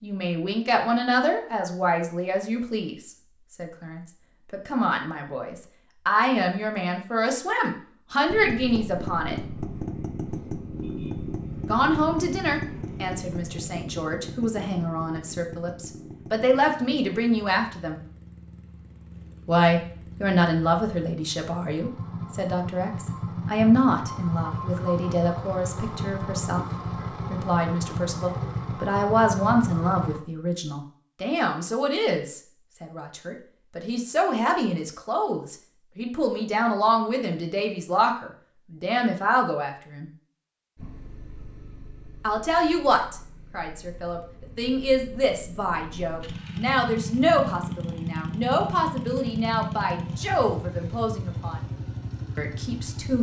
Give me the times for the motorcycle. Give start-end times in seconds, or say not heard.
8.2-30.2, 40.8-53.1.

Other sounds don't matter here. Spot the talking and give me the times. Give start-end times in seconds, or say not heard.
0.0-9.3, 11.7-18.0, 19.4-26.6, 27.3-40.0, 42.2-51.6, 52.4-53.1.